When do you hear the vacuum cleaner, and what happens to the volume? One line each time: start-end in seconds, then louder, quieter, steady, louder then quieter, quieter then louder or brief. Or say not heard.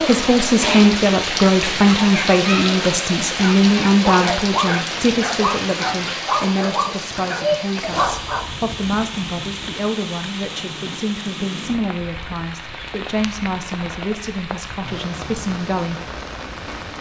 not heard.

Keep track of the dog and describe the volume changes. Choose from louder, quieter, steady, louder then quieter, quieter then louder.
steady.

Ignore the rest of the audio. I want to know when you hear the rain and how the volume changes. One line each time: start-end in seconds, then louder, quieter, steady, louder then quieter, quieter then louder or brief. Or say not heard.
0.0-16.9 quieter.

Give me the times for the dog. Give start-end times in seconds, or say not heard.
3.4-8.4.